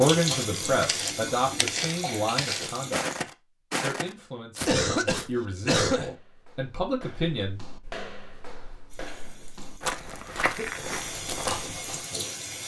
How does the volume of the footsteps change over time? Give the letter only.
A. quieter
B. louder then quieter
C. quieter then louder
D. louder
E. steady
C.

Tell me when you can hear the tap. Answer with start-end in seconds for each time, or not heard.
0.0-3.2, 8.9-12.6.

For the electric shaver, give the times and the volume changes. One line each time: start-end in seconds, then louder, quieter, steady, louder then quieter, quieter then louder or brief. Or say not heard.
not heard.